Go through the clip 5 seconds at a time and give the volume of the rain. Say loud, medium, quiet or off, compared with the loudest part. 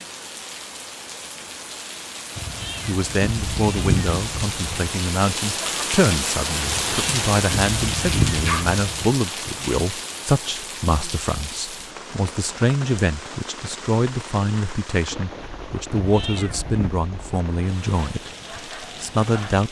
medium, loud, medium, medium.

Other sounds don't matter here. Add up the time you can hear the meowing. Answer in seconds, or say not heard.
6 s.